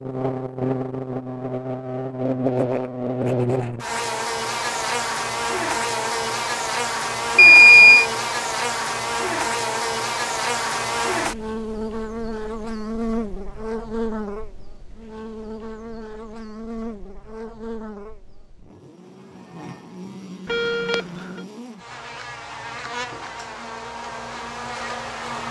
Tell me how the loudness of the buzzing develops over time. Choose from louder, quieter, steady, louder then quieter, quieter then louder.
quieter.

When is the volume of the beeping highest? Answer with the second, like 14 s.
8 s.